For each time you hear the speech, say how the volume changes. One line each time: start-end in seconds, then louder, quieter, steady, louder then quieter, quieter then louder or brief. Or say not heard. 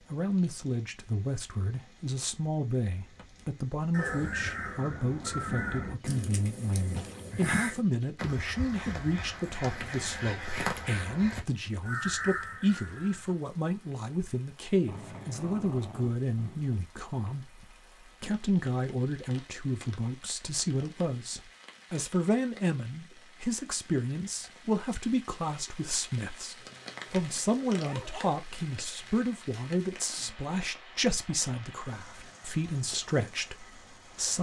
0.1-34.3 steady.